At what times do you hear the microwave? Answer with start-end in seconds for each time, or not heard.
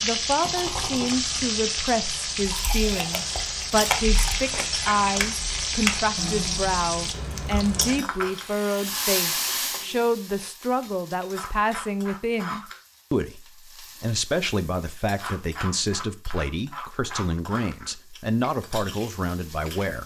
not heard.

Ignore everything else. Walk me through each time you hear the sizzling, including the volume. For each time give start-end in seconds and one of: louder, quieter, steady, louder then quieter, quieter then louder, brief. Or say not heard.
0.0-20.0 quieter.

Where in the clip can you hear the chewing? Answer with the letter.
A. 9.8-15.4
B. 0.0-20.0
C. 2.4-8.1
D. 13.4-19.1
C.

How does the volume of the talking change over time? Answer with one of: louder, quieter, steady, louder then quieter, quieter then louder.
steady.